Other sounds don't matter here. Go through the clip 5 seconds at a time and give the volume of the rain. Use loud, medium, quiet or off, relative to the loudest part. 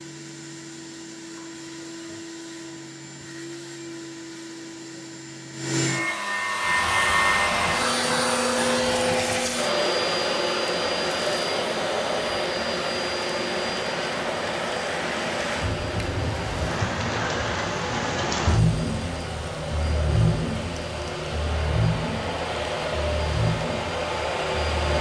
off, medium, medium, loud, loud.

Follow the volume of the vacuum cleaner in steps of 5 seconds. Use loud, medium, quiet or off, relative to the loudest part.
quiet, loud, loud, medium, medium.